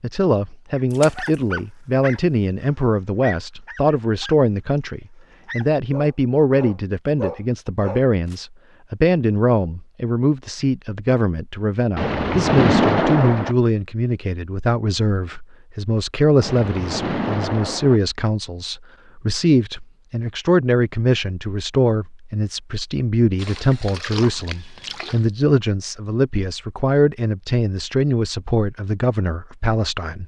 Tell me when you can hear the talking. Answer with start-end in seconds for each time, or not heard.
0.0-30.2.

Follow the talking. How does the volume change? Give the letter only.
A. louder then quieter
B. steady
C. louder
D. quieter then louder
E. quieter
B.